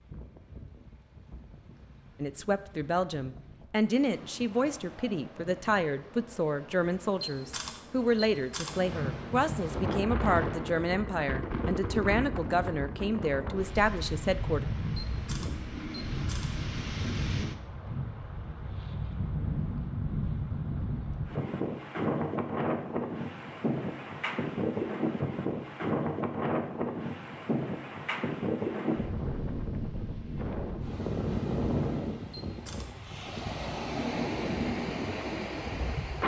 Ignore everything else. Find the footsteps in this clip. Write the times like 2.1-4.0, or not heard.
not heard.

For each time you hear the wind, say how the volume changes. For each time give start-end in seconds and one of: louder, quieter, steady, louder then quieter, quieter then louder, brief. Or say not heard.
0.0-36.2 louder.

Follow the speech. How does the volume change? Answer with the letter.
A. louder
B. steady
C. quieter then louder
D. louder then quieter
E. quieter
B.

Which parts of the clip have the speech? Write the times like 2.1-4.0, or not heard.
2.2-14.7.